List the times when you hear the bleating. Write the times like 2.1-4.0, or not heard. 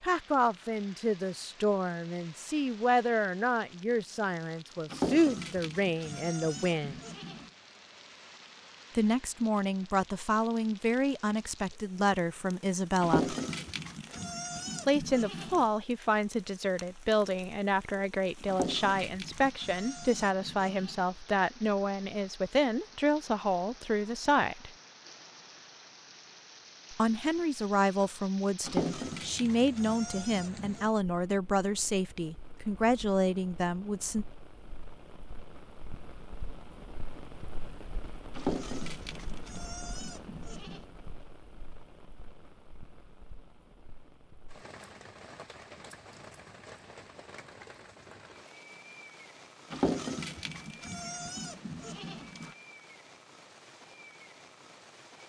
4.9-7.5, 13.0-15.6, 18.4-21.0, 28.6-30.9, 38.3-40.9, 49.7-52.5.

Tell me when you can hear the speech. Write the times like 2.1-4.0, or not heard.
0.0-7.0, 8.9-13.3, 14.8-24.7, 26.9-34.2.